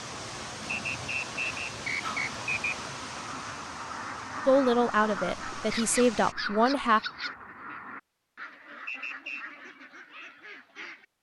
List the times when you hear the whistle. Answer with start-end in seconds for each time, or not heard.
0.9-2.8, 8.8-9.4.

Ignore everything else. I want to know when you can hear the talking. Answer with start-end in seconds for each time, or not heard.
4.5-7.0.